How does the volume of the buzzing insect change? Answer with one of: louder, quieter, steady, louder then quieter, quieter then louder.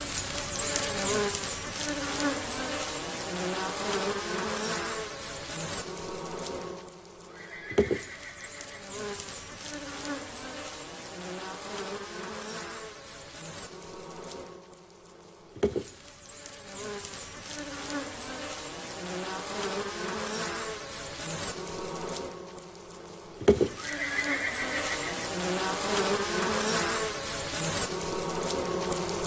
quieter then louder.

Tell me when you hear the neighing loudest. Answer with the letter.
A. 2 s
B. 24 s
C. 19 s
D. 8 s
B.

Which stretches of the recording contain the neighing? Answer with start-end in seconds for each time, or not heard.
7.2-8.9, 23.8-25.2.